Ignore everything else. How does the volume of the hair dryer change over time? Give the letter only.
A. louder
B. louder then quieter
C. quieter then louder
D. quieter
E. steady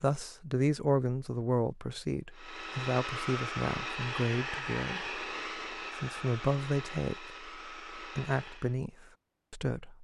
D.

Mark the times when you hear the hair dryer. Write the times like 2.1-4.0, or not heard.
2.3-8.8.